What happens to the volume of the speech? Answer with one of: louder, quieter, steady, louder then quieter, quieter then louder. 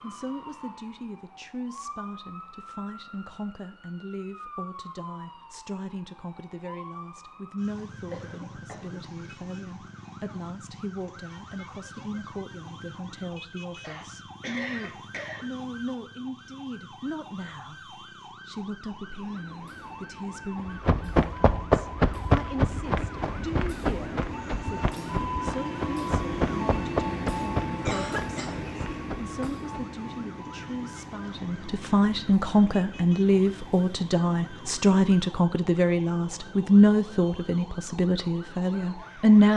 louder.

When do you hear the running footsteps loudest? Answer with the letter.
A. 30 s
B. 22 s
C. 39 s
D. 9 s
B.